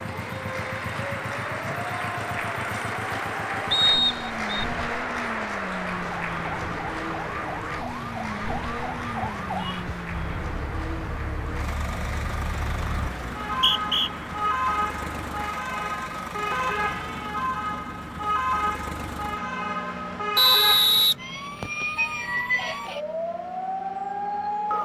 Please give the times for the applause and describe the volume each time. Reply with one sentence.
The applause can be heard from 0.0 to 15.4 s, getting quieter.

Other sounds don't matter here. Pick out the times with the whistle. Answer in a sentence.
The whistle can be heard from 3.7 to 4.7 s, from 13.4 to 14.1 s and from 20.4 to 21.9 s.